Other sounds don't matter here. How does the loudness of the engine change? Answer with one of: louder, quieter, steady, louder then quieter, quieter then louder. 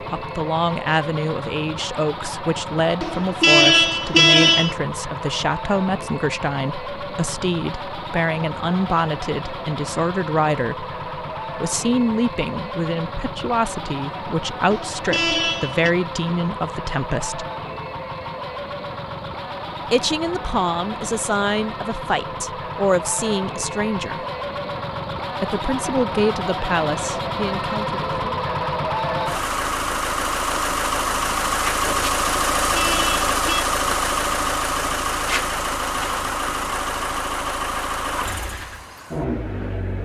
louder.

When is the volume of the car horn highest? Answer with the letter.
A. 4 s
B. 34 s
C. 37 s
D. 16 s
A.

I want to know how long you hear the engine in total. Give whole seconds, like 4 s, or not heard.
40 s.